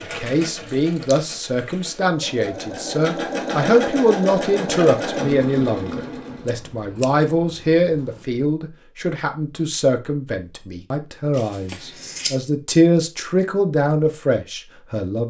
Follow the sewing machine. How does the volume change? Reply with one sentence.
The volume of the sewing machine goes up.